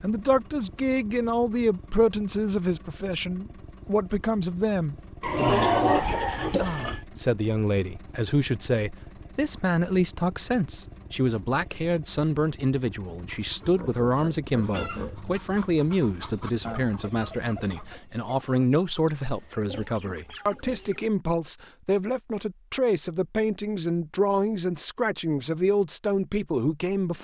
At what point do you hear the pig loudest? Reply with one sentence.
The loudest moment of the pig is at 6 seconds.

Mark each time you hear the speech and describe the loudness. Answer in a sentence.
You can hear the speech from 0.0 to 27.2 s, at a steady volume.